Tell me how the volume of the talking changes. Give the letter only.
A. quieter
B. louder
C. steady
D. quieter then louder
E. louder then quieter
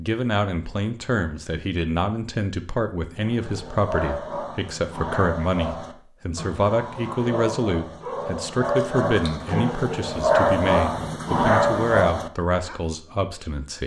C.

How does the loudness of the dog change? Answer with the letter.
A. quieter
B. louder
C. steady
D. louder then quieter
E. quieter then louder
B.